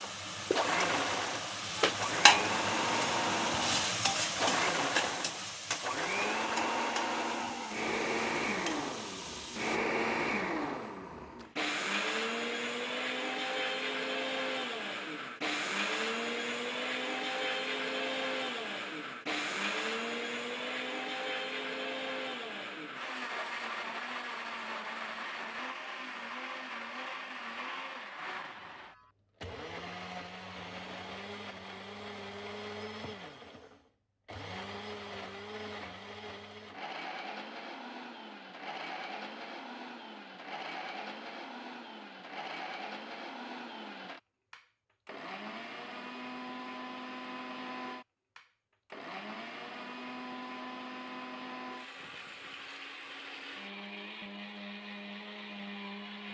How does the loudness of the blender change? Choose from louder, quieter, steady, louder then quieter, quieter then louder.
quieter.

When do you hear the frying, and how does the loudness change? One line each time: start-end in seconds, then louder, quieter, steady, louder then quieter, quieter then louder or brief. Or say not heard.
0.0-9.8 louder then quieter.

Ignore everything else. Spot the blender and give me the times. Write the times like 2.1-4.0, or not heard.
0.0-56.2.